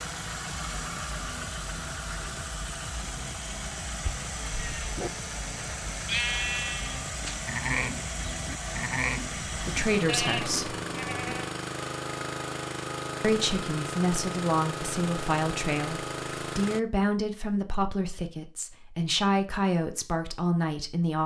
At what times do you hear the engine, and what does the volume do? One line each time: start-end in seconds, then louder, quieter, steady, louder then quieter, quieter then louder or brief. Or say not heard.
0.0-16.8 steady.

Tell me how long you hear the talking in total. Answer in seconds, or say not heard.
9 s.